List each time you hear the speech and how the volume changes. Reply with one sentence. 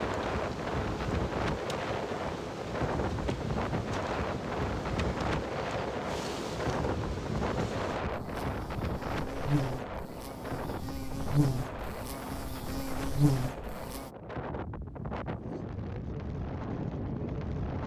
The speech can't be heard in this clip.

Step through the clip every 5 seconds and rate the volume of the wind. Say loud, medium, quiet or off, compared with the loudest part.
loud, loud, medium, loud.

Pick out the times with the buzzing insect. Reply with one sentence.
You can hear the buzzing insect from 0.0 to 14.1 s.